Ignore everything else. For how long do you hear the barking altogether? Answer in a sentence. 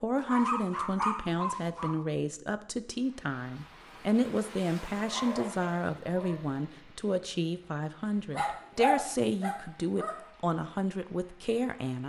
You can hear the barking for 5 seconds altogether.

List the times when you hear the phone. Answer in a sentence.
The phone can't be heard in this clip.